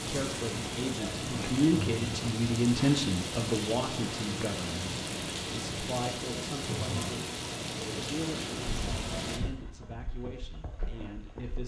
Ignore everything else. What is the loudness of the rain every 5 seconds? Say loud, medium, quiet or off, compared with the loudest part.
loud, loud, off.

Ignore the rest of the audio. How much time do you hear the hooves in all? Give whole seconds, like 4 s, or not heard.
3 s.